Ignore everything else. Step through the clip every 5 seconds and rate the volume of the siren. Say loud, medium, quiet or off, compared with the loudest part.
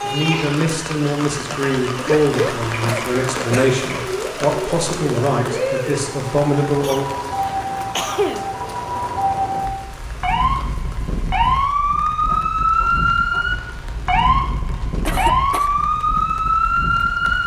medium, medium, loud, loud.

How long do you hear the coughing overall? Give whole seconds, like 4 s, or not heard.
4 s.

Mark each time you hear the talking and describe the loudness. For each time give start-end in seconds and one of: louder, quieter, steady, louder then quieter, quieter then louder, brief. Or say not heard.
0.0-7.0 steady.